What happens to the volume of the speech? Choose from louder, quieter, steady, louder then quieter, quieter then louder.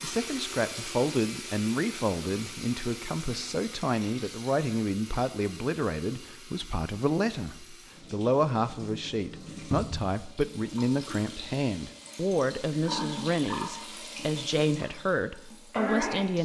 steady.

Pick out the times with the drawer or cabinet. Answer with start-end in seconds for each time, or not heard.
9.7-10.1.